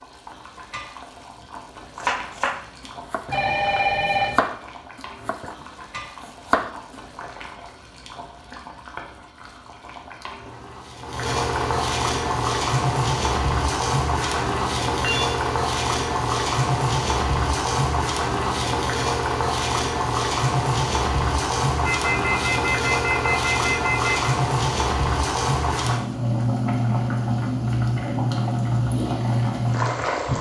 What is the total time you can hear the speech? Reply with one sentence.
The speech can't be heard in this clip.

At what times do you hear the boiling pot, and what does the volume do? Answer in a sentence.
The boiling pot can be heard from 0.0 to 30.3 s, getting louder.